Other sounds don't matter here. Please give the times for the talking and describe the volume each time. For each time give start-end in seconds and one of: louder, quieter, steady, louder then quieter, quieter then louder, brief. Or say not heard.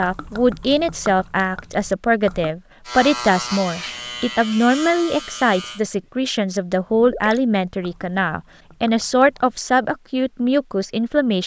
0.0-11.4 steady.